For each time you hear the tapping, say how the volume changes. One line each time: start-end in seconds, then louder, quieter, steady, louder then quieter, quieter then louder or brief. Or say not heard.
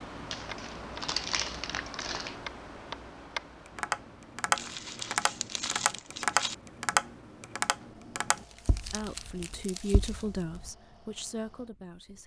0.5-10.7 louder then quieter.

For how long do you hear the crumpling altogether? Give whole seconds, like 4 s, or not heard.
6 s.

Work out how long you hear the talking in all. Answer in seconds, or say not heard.
3 s.